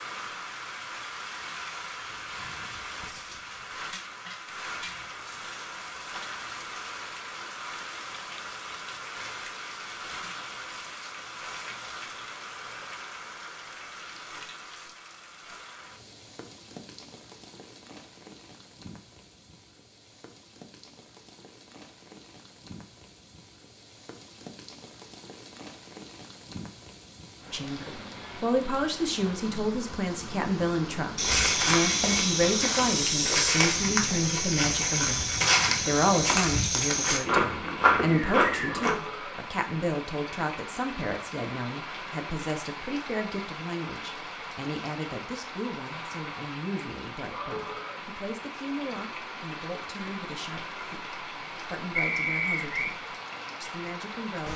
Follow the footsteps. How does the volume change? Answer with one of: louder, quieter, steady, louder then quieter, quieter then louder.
steady.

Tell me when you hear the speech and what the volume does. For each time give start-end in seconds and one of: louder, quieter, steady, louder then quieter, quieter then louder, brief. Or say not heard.
27.5-54.5 quieter.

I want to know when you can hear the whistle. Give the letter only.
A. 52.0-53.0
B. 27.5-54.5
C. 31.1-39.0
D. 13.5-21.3
A.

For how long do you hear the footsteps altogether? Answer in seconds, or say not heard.
8 s.